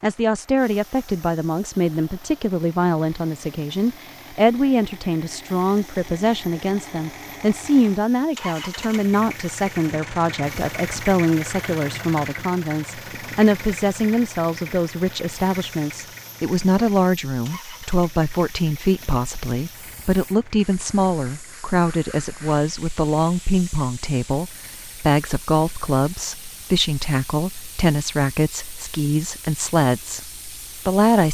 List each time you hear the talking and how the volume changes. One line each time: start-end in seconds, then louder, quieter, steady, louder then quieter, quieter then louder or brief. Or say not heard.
0.0-31.2 steady.